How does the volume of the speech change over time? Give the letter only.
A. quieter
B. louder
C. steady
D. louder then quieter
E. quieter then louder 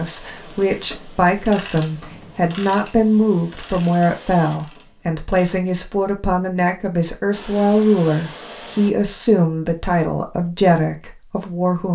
C.